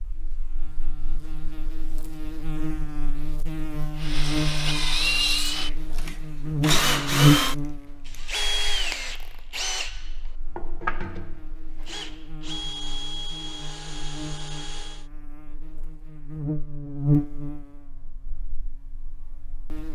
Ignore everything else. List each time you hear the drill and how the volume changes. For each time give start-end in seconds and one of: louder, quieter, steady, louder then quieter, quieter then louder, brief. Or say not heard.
4.0-15.1 quieter.